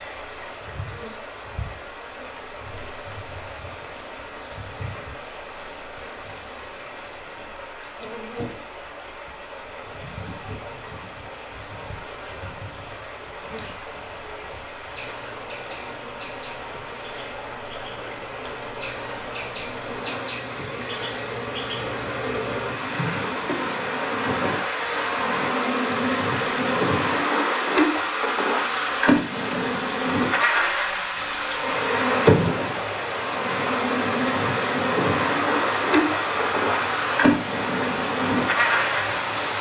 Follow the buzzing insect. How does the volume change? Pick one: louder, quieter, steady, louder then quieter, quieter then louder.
louder.